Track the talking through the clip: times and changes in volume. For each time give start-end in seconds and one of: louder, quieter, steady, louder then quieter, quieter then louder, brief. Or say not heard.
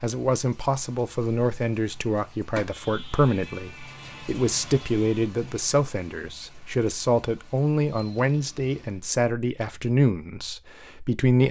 0.0-11.4 steady.